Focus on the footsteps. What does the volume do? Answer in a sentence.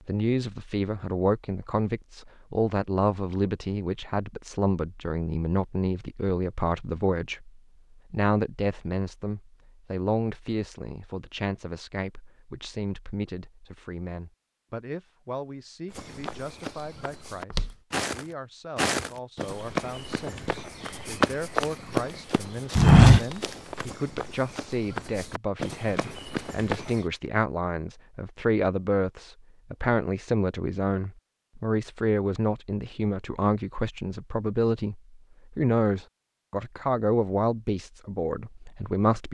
The loudness of the footsteps goes up, then down.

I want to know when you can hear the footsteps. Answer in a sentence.
You can hear the footsteps from 15.9 to 26.9 s.